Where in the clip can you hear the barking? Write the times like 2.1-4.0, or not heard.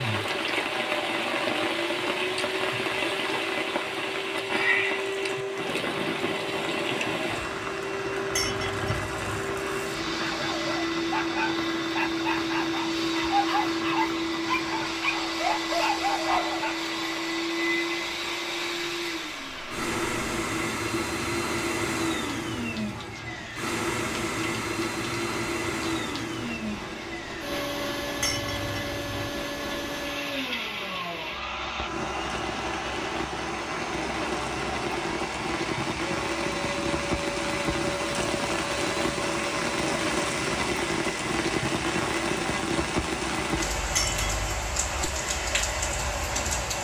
10.2-16.8.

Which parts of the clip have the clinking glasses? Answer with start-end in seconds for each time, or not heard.
8.3-9.4, 28.2-29.3, 43.9-44.7.